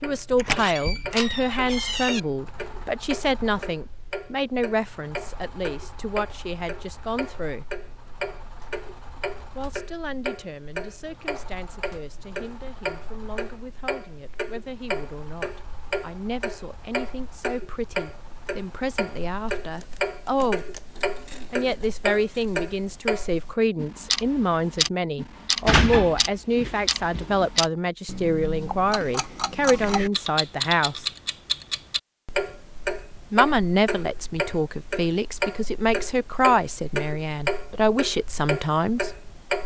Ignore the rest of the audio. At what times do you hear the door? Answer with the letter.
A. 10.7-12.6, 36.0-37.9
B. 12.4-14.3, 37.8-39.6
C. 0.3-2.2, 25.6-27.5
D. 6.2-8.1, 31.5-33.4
C.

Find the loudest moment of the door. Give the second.
26 s.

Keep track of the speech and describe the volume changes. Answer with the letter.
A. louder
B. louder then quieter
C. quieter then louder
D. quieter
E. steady
C.